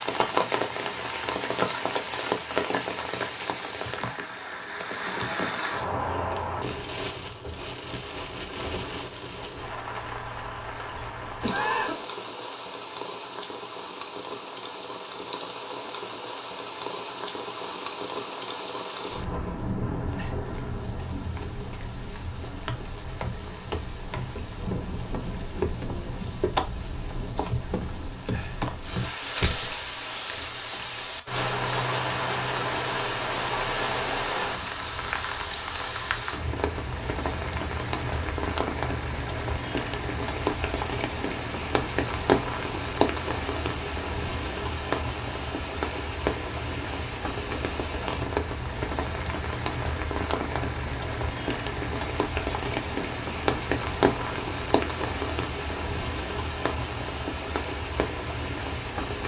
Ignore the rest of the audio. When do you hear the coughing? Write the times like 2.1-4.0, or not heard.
11.4-12.0.